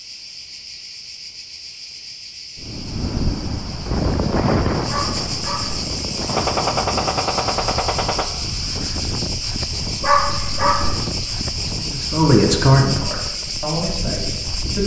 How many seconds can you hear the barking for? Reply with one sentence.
You can hear the barking for 2 seconds altogether.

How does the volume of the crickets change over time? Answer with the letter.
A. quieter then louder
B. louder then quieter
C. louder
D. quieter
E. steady
C.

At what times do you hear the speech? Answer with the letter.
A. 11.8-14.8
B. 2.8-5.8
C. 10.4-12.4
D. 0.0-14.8
A.